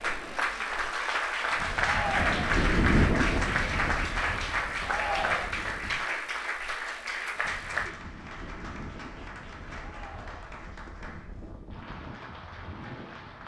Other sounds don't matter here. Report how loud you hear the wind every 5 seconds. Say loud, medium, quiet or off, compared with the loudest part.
loud, quiet, quiet.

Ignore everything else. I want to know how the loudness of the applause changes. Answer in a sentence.
The volume of the applause goes down.